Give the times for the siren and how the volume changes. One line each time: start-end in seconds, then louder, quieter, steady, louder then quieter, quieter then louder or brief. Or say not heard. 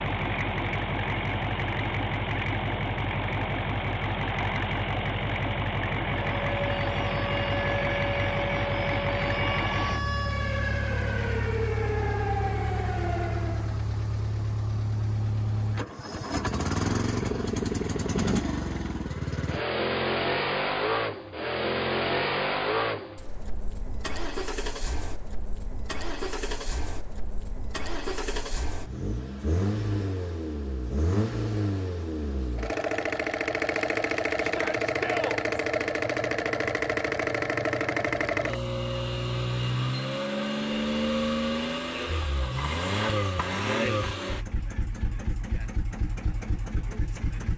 6.2-13.8 steady.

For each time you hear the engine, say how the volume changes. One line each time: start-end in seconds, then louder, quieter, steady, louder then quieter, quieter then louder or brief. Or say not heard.
0.0-47.5 steady.